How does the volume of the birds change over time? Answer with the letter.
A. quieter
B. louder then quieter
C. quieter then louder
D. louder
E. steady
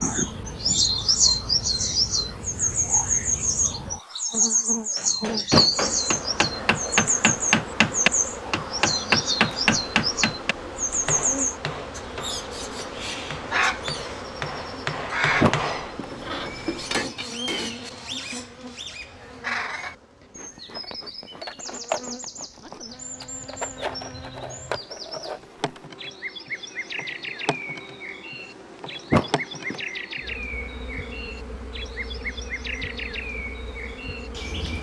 A.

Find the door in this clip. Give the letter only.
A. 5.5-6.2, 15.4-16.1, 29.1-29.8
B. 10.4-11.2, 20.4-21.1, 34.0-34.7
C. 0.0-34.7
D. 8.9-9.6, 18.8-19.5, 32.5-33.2
A.